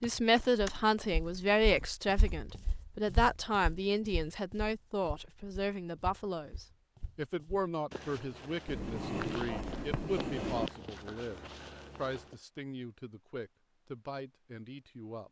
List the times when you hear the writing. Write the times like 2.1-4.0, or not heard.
8.7-10.7.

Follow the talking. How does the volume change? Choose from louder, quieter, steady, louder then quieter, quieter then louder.
quieter.